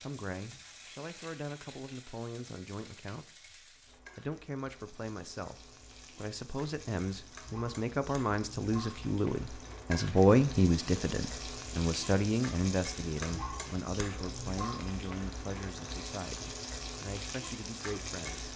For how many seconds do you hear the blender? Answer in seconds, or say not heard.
not heard.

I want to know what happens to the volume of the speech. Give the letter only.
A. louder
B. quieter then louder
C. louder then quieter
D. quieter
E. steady
C.